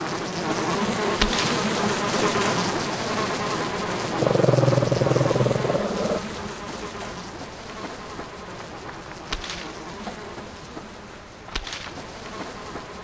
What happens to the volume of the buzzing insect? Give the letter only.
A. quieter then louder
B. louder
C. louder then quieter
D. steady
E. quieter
E.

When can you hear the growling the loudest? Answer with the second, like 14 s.
5 s.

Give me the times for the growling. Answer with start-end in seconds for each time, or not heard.
4.2-6.2.